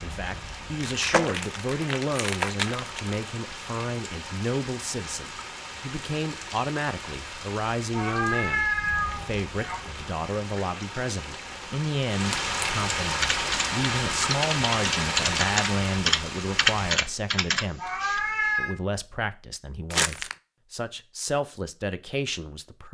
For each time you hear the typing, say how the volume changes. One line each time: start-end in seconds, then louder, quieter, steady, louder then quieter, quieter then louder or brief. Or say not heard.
13.2-18.3 louder then quieter.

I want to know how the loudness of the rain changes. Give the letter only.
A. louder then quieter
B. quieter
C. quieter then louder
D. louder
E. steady
D.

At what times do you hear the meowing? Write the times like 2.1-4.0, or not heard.
7.9-9.8, 17.8-18.8.